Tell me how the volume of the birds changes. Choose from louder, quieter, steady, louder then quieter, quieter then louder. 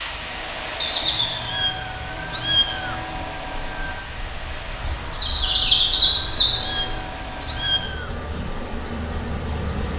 quieter then louder.